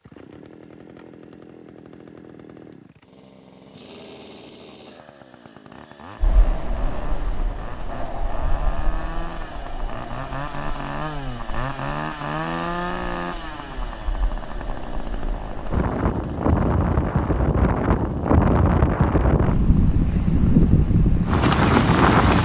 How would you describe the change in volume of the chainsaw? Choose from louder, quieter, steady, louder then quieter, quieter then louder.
louder then quieter.